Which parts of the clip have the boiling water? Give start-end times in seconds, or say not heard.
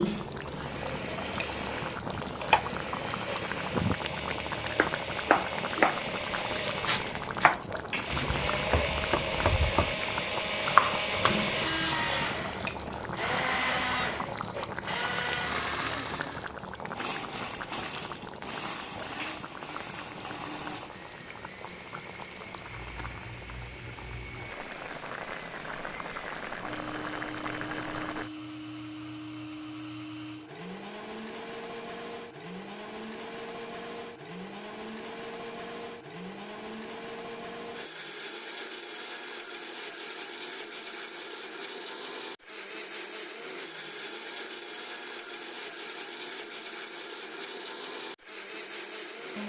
0.0-28.3.